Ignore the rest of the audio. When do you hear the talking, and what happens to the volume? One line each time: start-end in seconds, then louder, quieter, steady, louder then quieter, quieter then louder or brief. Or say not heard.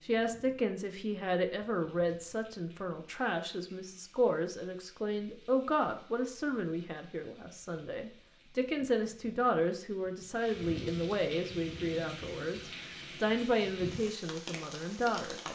0.1-15.5 steady.